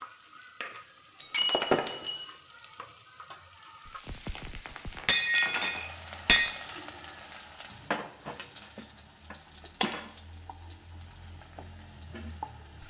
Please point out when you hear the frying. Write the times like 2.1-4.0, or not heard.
0.0-12.8.